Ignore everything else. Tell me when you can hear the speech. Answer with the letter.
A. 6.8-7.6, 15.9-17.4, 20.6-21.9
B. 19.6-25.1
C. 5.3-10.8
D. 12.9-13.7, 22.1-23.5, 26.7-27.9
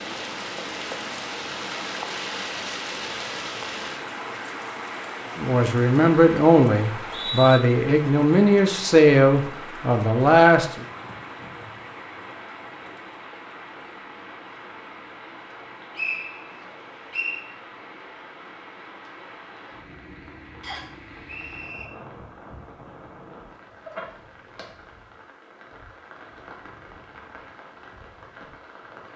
C.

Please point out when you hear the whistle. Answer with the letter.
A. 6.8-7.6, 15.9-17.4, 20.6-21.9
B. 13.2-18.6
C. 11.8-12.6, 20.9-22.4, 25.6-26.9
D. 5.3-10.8
A.